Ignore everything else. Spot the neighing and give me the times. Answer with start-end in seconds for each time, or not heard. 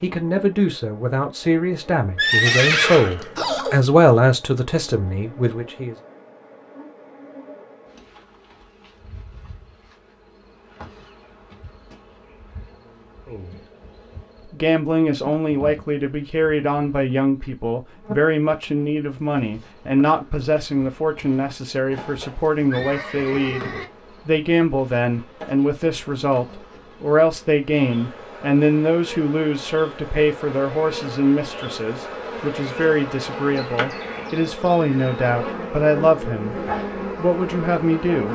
2.1-3.8, 21.9-23.9.